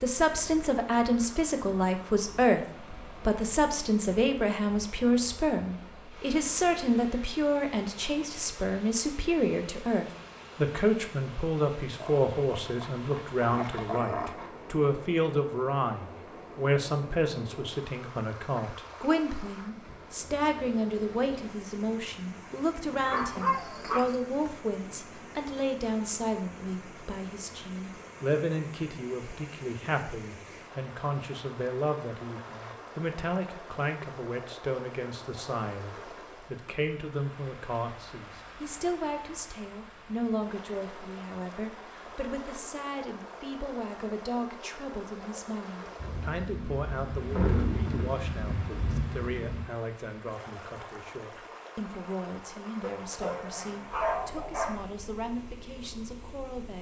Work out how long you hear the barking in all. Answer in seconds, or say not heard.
6 s.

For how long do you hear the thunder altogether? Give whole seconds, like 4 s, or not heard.
4 s.